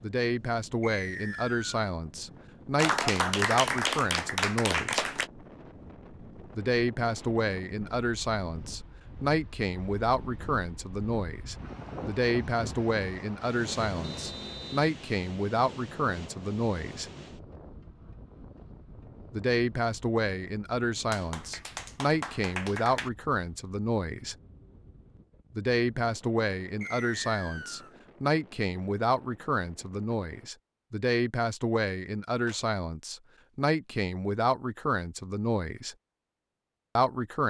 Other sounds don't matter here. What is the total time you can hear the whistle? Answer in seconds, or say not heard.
3 s.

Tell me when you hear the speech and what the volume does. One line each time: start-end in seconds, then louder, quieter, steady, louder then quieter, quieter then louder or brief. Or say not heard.
0.0-5.0 steady
6.5-17.1 steady
19.3-24.4 steady
25.6-36.0 steady
37.0-37.4 brief.